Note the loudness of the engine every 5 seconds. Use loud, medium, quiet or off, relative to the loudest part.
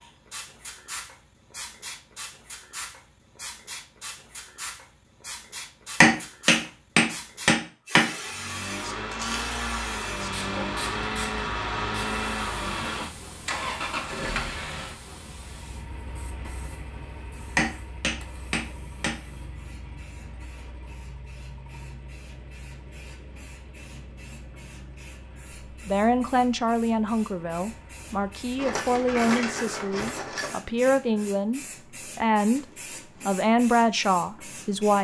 off, loud, loud, quiet, quiet, quiet, off.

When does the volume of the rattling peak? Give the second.
29 s.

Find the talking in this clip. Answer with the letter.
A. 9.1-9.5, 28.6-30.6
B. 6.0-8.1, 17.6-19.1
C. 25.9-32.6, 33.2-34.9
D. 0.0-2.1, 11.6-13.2
C.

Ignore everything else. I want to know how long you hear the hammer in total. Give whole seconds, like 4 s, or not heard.
4 s.